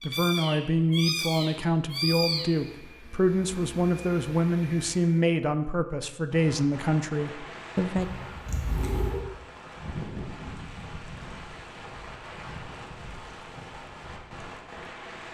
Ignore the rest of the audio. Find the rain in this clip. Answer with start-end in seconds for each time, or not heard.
6.3-15.3.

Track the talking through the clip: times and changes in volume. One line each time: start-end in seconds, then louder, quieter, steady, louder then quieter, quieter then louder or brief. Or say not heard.
0.0-8.1 steady.